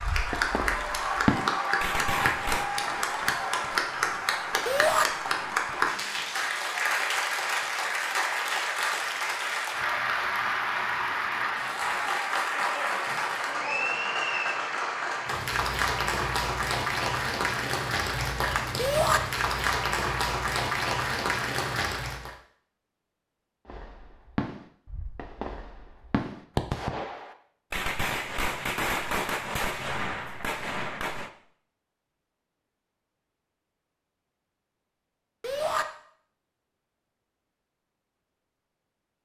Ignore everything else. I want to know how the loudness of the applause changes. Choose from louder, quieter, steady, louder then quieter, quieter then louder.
steady.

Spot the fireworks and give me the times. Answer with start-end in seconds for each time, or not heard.
0.0-6.0, 23.6-31.3.